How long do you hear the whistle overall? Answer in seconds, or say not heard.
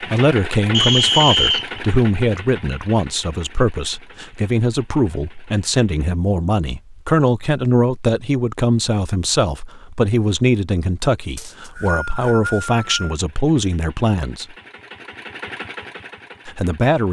3 s.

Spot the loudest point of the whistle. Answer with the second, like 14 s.
1 s.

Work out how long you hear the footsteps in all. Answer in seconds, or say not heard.
not heard.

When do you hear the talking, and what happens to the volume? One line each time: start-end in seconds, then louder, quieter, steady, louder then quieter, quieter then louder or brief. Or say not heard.
0.0-14.6 steady
16.4-17.0 brief.